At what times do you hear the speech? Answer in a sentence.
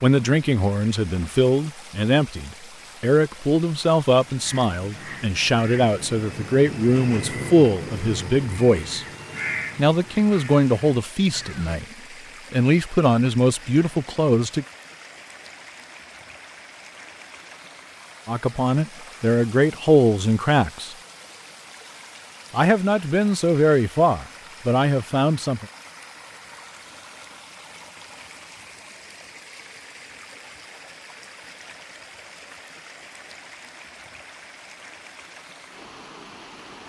The speech can be heard from 0.0 to 9.1 s, from 9.8 to 11.8 s, from 12.5 to 14.7 s, from 18.2 to 20.9 s and from 22.5 to 25.6 s.